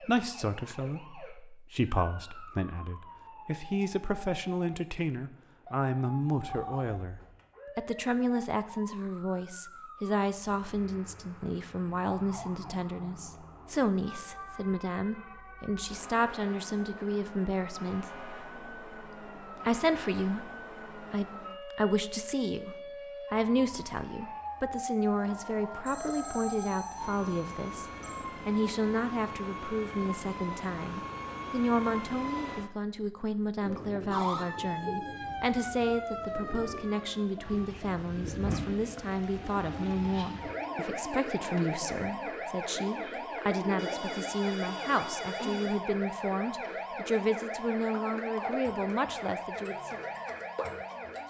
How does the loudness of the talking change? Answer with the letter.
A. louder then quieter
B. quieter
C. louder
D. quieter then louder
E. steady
E.